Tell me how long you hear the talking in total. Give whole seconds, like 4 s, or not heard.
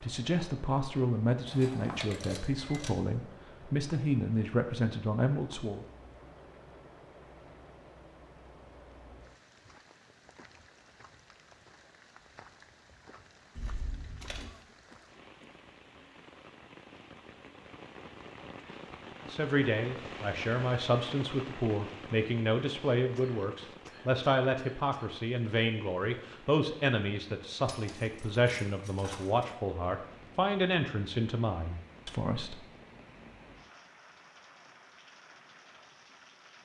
19 s.